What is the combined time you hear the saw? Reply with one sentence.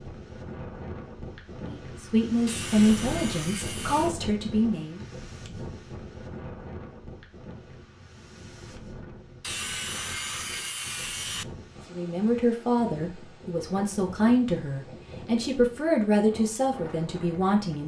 You can hear the saw for 4 seconds altogether.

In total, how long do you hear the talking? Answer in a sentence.
You can hear the talking for 9 seconds altogether.